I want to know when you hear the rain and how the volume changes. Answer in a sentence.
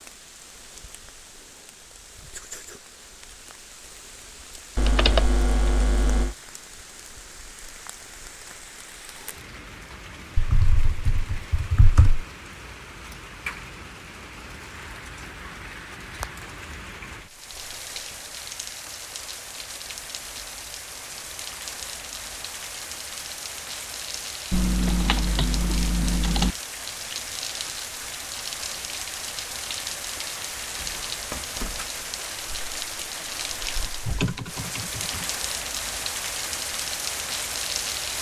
The rain can be heard from 0.0 to 38.1 s, getting louder.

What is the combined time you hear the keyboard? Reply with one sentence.
You can hear the keyboard for 7 seconds altogether.